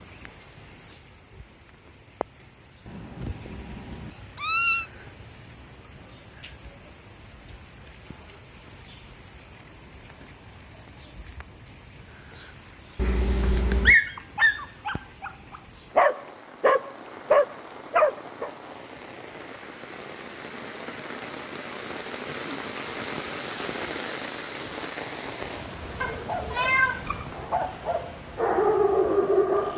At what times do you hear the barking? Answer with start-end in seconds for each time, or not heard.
13.1-18.5, 25.9-29.7.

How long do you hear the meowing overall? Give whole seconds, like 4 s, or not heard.
4 s.